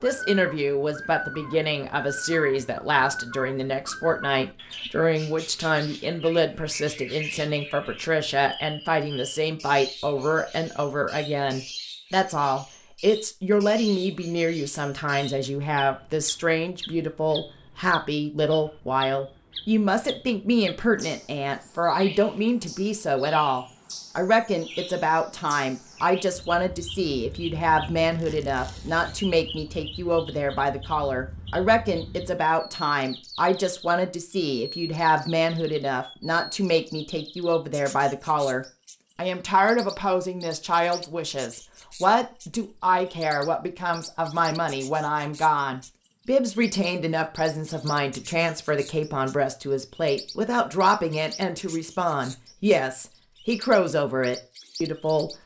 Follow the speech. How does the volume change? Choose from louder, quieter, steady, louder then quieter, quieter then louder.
steady.